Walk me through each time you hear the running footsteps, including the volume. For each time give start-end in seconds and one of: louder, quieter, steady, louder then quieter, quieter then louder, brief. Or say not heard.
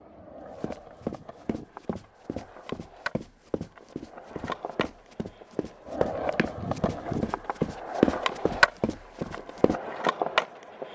0.6-9.8 quieter then louder.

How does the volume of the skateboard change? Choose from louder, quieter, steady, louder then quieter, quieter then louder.
louder.